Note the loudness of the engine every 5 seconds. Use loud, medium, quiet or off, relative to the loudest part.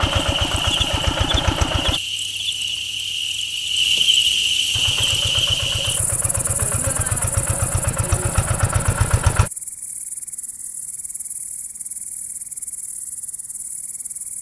loud, loud, off.